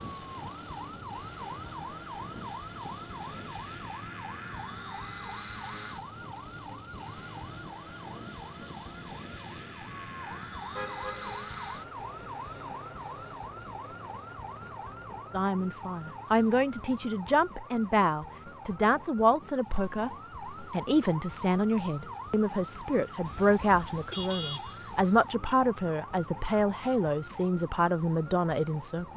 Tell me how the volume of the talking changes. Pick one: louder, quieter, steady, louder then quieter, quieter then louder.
steady.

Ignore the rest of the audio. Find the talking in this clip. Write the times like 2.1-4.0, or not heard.
15.3-29.1.